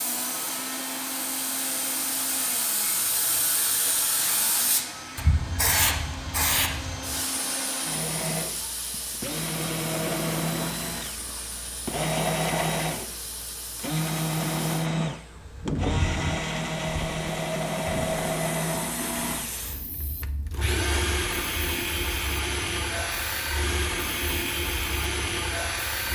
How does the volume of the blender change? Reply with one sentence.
The volume of the blender goes up.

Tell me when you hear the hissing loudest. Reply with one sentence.
The volume of the hissing peaks at 6 seconds.